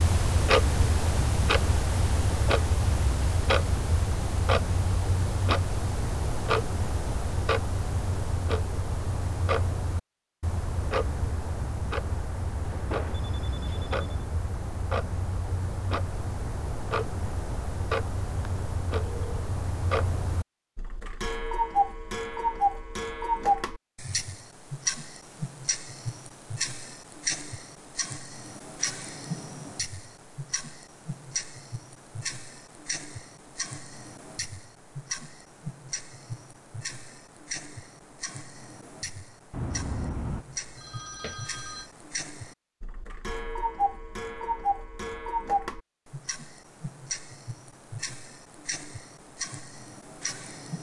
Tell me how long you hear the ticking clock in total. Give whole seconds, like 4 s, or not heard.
51 s.